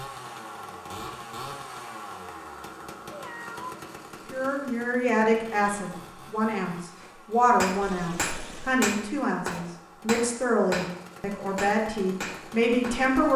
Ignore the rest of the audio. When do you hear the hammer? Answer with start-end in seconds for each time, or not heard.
7.0-10.9, 11.6-13.1.